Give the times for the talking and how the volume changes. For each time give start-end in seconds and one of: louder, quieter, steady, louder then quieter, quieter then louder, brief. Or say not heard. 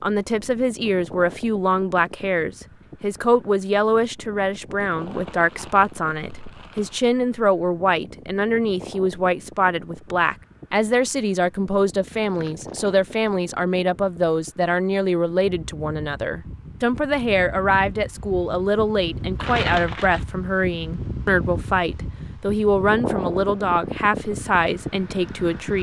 0.0-25.7 steady.